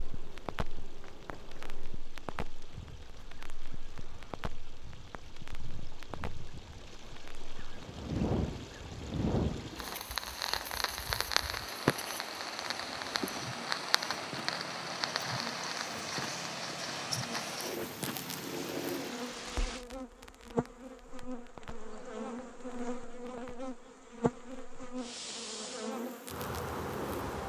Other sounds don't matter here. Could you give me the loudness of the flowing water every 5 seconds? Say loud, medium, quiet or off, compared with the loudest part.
quiet, medium, loud, loud, off, off.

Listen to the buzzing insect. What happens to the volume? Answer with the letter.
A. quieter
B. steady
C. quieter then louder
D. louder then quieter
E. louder
E.